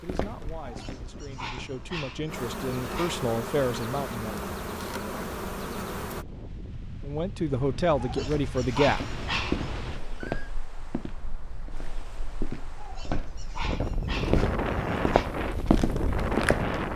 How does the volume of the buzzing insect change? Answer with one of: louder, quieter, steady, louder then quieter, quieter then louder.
louder.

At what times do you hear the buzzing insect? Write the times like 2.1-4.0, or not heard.
0.0-6.2.